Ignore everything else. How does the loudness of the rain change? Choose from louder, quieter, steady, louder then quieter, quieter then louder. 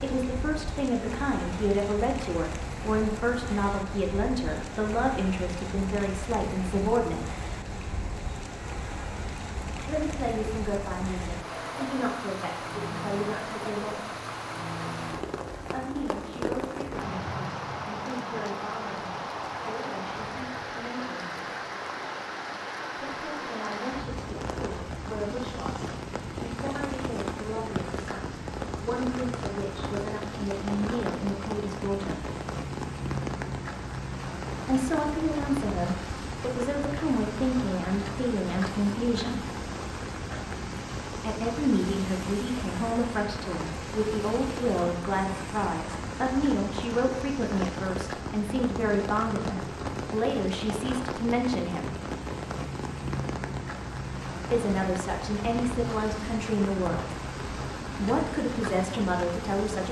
steady.